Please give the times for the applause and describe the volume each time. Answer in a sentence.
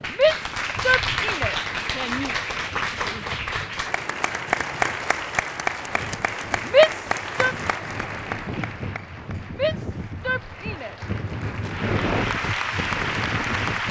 The applause can be heard from 0.0 to 13.8 s, getting quieter then louder.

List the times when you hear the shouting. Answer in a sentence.
The shouting can be heard from 0.1 to 2.3 s, from 6.7 to 7.5 s and from 9.5 to 10.9 s.